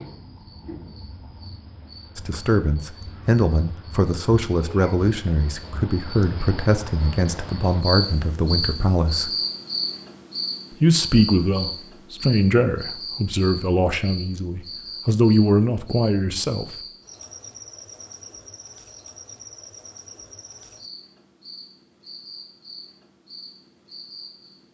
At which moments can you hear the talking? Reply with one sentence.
The talking can be heard from 2.1 to 9.3 s and from 10.7 to 16.8 s.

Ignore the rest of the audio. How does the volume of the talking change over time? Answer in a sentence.
The volume of the talking stays about the same.